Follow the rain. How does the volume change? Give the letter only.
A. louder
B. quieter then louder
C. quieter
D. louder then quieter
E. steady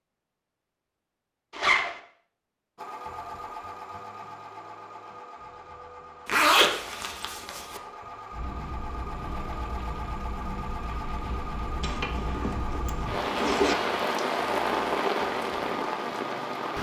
A.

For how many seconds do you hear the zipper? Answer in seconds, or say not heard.
4 s.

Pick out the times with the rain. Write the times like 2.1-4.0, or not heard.
8.3-16.7.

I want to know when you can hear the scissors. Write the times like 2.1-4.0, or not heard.
not heard.